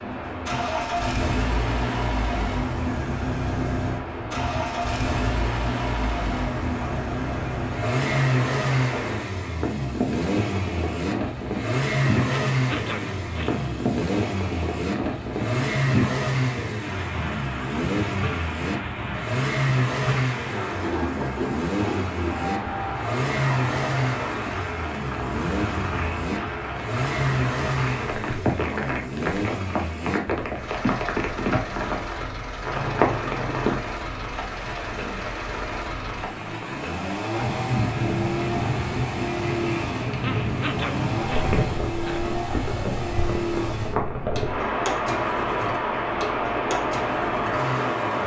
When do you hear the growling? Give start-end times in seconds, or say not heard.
12.3-13.9, 40.2-42.2.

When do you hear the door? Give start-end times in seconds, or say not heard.
not heard.